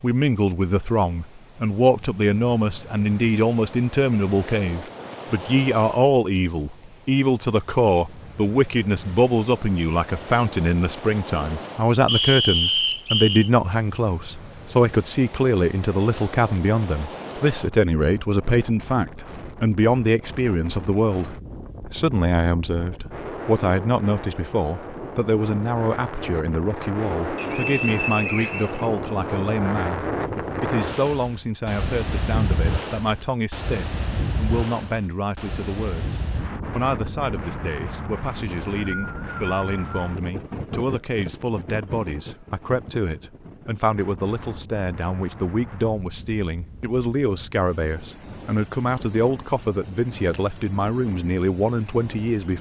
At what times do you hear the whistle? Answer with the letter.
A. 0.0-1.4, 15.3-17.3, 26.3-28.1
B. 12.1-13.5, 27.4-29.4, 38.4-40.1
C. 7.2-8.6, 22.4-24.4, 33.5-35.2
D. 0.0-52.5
B.